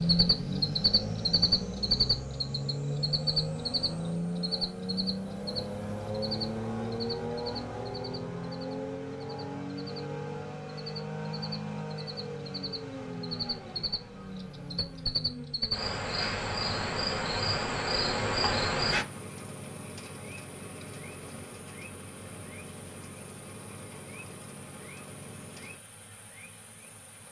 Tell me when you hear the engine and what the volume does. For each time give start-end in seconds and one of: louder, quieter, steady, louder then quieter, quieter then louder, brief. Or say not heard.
0.0-25.8 quieter.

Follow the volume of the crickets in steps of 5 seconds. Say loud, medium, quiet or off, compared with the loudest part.
loud, medium, medium, loud, quiet, quiet.